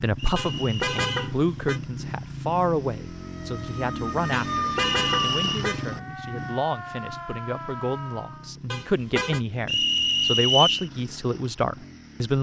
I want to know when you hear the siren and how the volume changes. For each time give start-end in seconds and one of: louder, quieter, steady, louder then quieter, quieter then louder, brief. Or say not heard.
3.0-8.6 louder then quieter.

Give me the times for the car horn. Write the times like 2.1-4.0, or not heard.
0.3-1.8, 4.3-5.8, 8.7-9.4.